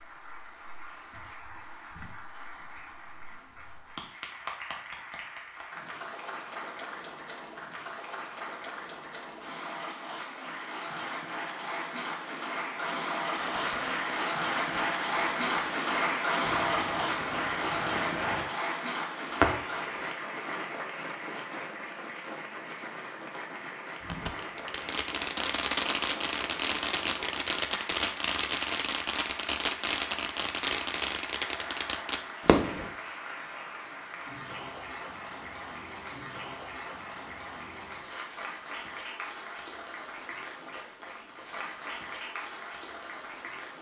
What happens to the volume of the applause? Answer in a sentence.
The loudness of the applause goes up, then down.